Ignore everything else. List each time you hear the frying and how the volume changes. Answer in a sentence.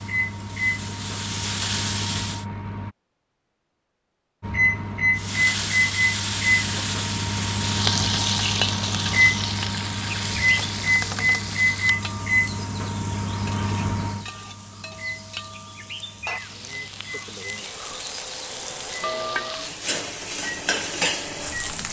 The frying can be heard briefly from 0.0 to 2.5 s; and from 5.2 to 21.8 s, getting quieter then louder.